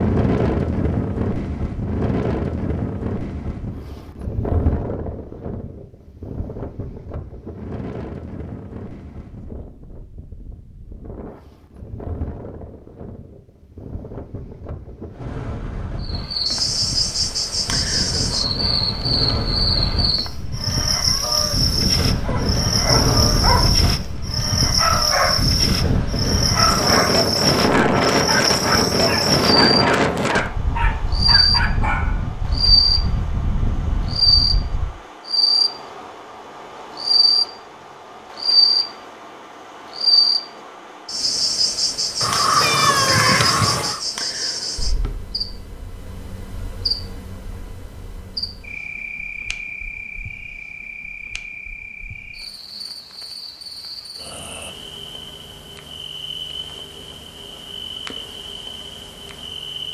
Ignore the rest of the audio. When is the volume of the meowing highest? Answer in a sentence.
The volume of the meowing peaks at 43 seconds.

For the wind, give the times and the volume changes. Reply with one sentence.
The wind can be heard from 0.0 to 34.9 s, getting quieter then louder.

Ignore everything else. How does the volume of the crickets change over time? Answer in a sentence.
The loudness of the crickets goes down.